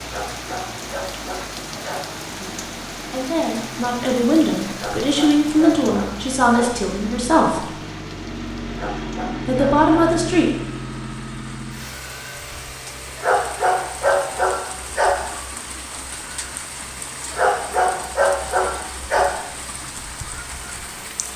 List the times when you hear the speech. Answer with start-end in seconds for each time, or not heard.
2.3-7.7, 9.4-10.6.